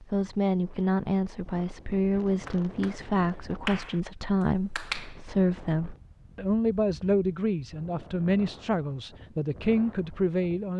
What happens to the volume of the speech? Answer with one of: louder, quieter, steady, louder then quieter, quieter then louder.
steady.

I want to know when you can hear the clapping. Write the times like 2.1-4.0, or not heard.
2.5-4.0, 4.8-5.2.